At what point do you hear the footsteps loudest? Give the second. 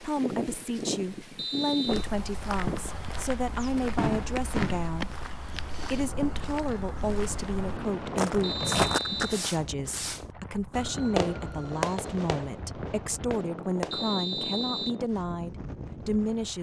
9 s.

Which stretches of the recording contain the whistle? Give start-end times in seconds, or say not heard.
1.4-2.1, 8.4-9.4, 13.9-15.0.